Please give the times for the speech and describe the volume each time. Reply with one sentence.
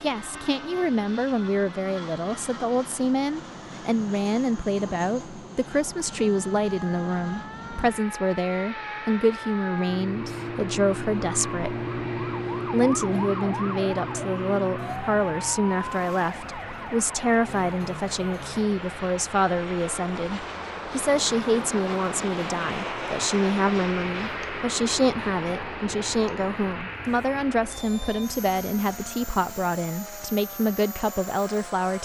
You can hear the speech from 0.0 to 11.8 s, at a steady volume; and from 12.7 to 31.9 s, at a steady volume.